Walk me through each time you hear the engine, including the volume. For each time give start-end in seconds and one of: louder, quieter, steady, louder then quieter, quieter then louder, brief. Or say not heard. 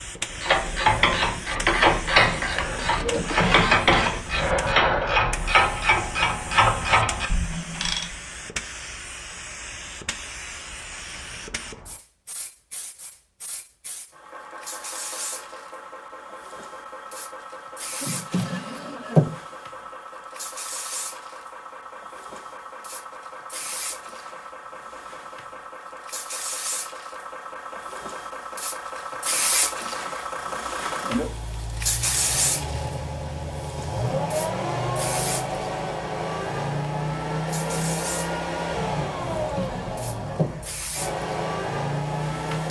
14.1-42.6 louder.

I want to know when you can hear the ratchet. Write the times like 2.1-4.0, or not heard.
0.4-8.2.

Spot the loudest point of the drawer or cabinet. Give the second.
19 s.